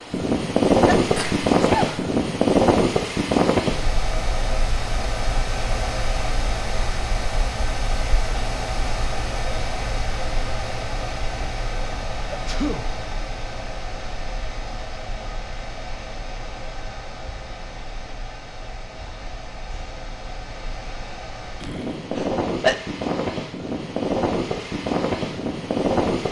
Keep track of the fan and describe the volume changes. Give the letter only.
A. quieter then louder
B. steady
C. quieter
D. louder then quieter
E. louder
A.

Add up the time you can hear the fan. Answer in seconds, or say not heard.
26 s.